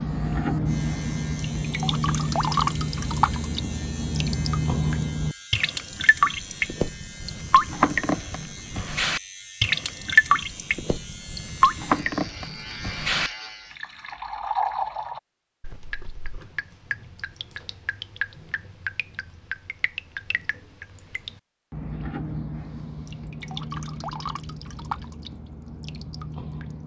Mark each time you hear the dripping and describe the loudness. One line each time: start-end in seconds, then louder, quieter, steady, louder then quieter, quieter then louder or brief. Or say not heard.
0.0-26.8 quieter.